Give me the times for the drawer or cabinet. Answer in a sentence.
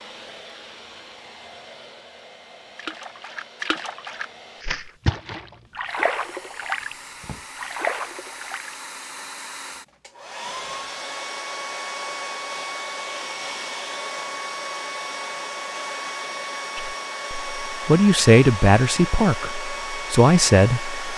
The drawer or cabinet can be heard from 6.8 to 7.5 s.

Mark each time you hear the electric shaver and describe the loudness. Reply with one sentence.
You can't hear the electric shaver here.